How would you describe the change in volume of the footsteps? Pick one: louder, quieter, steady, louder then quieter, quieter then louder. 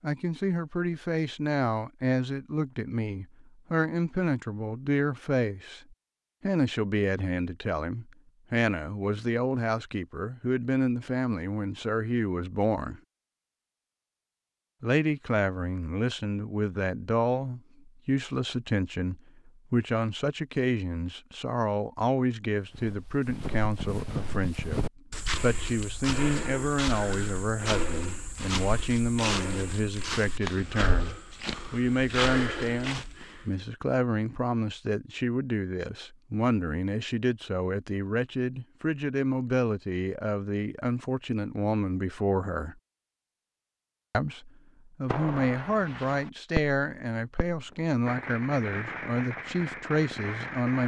steady.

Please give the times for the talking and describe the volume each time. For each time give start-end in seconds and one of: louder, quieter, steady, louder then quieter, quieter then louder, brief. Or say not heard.
0.0-13.0 steady
14.8-42.8 steady
44.1-50.8 steady.